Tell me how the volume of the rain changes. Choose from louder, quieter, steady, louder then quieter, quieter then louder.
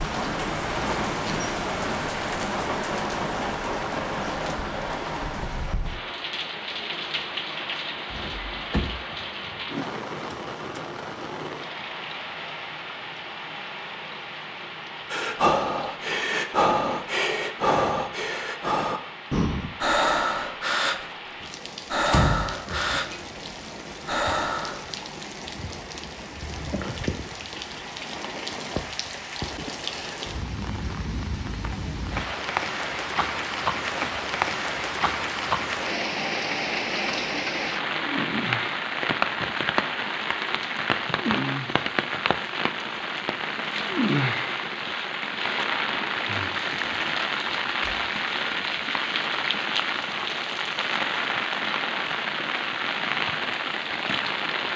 quieter then louder.